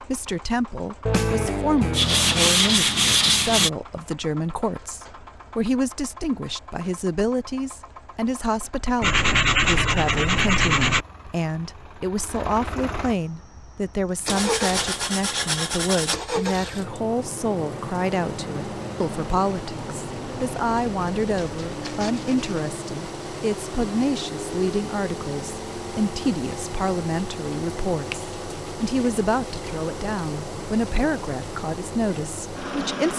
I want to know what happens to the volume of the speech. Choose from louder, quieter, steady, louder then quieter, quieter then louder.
steady.